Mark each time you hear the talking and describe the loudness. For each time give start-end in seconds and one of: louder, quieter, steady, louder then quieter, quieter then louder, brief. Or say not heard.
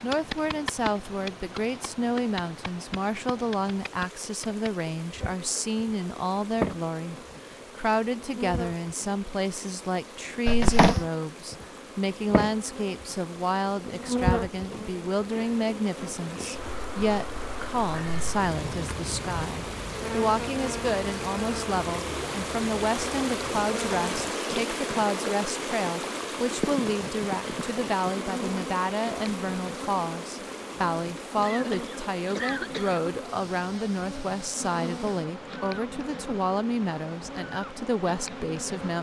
0.0-38.9 steady.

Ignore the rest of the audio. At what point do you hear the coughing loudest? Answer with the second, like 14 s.
11 s.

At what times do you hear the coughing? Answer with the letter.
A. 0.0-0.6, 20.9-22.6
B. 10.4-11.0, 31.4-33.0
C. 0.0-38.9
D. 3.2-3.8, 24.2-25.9
B.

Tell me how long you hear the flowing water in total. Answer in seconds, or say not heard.
39 s.